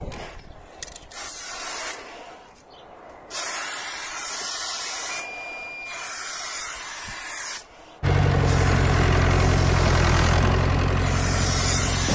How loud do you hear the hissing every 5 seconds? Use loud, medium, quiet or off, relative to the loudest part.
medium, medium, loud.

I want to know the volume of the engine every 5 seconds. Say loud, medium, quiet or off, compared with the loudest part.
off, loud, loud.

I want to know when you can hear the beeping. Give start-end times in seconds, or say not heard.
5.1-6.1.